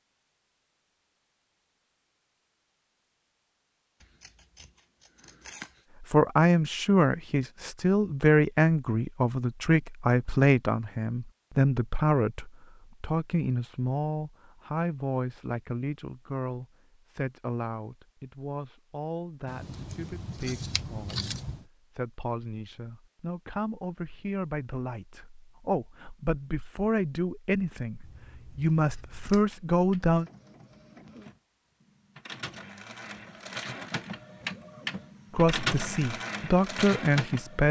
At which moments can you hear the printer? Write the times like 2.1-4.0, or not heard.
29.3-37.6.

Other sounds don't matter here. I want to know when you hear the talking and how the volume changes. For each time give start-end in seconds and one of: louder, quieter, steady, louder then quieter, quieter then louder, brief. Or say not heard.
6.0-30.2 quieter then louder
35.3-37.6 brief.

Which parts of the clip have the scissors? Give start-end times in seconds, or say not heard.
4.0-5.8, 19.4-21.6, 28.0-29.6.